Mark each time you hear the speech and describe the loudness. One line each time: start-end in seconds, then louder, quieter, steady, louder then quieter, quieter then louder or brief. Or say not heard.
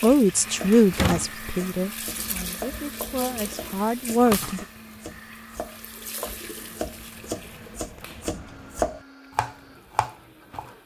0.0-4.7 quieter then louder.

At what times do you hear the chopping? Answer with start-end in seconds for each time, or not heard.
0.0-10.7.